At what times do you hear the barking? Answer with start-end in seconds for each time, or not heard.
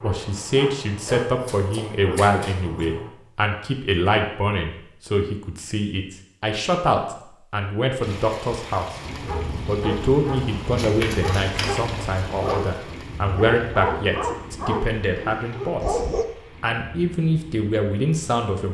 0.0-3.1, 8.9-16.2.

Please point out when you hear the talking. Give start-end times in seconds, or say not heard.
0.0-8.8, 9.7-16.0, 16.6-18.6.